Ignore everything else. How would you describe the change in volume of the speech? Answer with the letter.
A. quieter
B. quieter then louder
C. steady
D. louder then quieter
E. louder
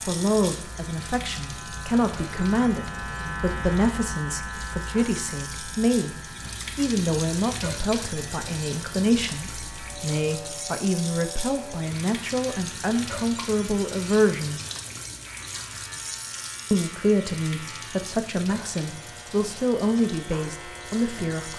C.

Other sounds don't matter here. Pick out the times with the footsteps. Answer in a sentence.
You can't hear the footsteps here.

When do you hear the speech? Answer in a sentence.
The speech can be heard from 0.1 to 6.2 s, from 6.8 to 14.6 s and from 16.7 to 21.5 s.